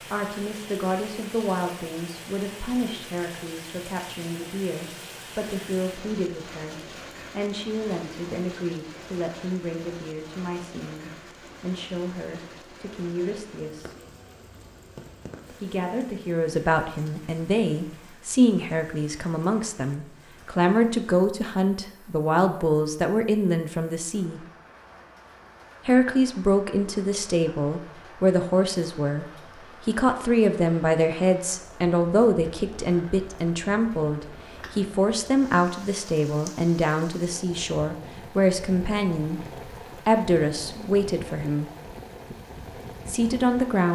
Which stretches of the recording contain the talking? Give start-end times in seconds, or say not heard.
0.1-13.9, 15.5-24.4, 25.9-39.4, 40.0-41.7, 43.0-43.9.